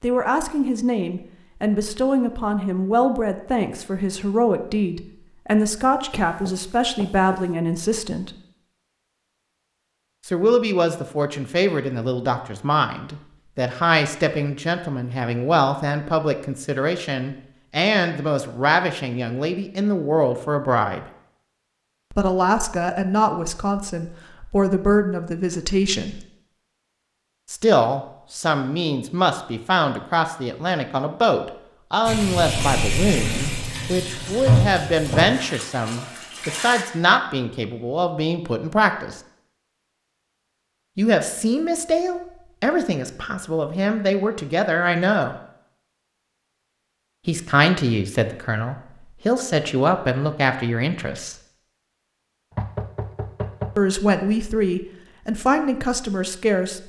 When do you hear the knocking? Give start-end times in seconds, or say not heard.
6.1-7.5, 52.5-53.8.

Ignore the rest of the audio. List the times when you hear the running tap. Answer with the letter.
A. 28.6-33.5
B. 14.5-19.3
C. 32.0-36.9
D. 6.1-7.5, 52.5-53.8
C.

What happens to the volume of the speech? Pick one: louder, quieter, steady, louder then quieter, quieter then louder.
steady.